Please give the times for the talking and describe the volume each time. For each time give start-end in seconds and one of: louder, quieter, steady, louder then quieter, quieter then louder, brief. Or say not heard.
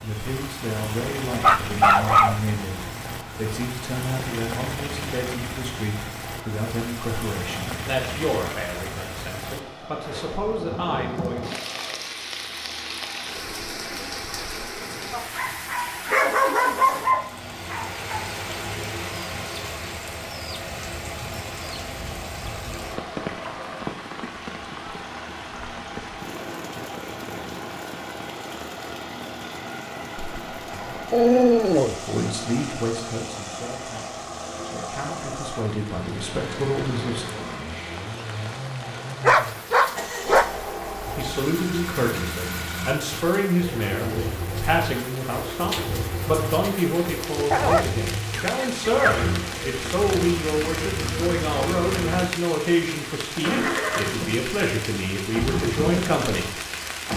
0.0-11.5 steady
32.0-37.2 quieter then louder
41.0-56.6 steady.